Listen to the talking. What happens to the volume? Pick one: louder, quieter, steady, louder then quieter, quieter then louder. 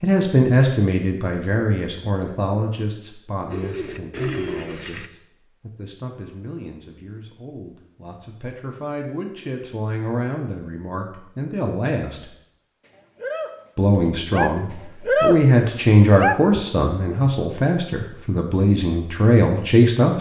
quieter then louder.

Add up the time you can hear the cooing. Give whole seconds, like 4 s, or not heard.
5 s.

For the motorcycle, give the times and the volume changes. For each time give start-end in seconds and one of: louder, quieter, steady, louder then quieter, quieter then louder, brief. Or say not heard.
not heard.